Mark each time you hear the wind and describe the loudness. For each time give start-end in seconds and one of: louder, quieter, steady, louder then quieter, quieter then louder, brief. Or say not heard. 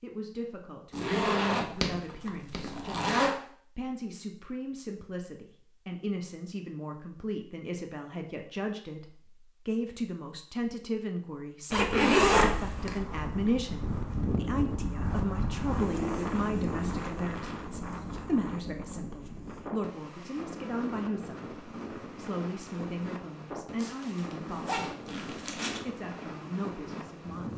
12.8-27.5 quieter.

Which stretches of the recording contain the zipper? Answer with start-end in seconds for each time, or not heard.
0.9-3.4, 11.7-13.0, 23.8-25.8.